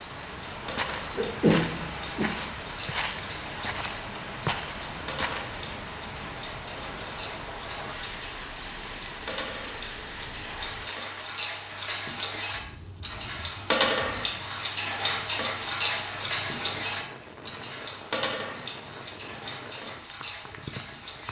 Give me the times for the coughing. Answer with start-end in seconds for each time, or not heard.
1.1-2.3.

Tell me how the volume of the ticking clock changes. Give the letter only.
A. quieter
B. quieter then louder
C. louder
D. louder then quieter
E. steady
D.